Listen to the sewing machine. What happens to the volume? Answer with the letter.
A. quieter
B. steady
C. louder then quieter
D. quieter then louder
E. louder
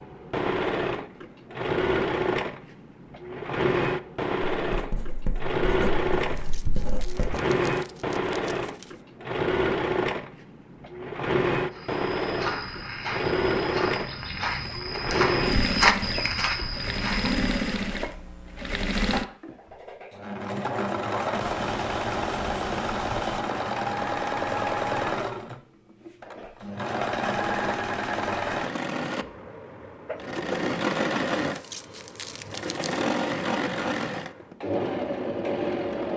B.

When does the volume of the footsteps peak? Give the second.
16 s.